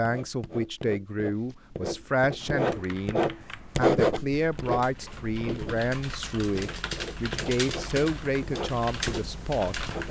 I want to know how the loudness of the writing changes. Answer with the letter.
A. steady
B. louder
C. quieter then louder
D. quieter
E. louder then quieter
E.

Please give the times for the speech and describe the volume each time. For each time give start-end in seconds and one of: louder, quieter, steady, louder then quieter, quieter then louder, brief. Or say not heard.
0.0-9.8 steady.